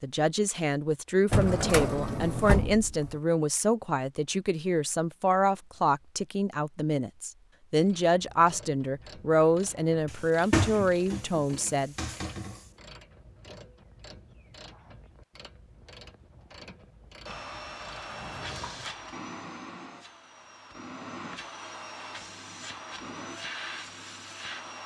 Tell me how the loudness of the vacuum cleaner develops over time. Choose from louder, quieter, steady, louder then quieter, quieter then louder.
steady.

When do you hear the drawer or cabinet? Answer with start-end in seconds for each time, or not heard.
1.3-3.1, 10.1-12.6, 18.1-18.9.